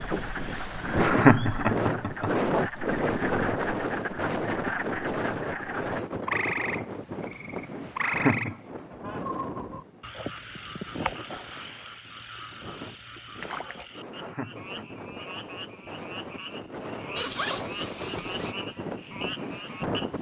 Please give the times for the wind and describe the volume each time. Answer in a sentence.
The wind can be heard from 0.0 to 20.1 s, getting quieter then louder.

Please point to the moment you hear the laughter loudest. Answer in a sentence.
The volume of the laughter peaks at 1 second.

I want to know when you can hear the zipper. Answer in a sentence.
The zipper can be heard from 2.5 to 3.5 s, from 7.3 to 8.2 s and from 17.1 to 18.6 s.